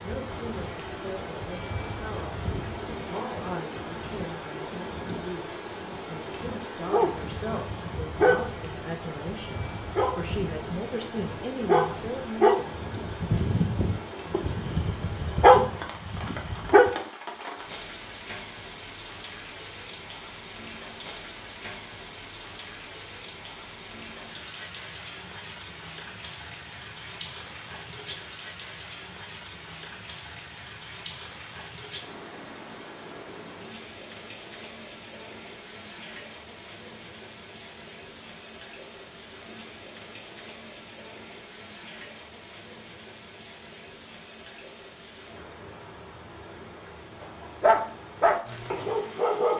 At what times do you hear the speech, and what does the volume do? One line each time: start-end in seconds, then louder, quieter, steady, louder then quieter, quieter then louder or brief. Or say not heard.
0.0-12.7 louder.